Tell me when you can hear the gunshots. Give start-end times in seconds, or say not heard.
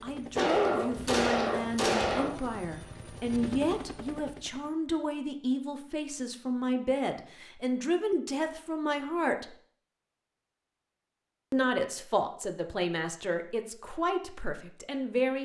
0.3-2.4.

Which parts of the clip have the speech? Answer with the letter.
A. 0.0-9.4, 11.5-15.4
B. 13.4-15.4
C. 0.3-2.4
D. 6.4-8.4
A.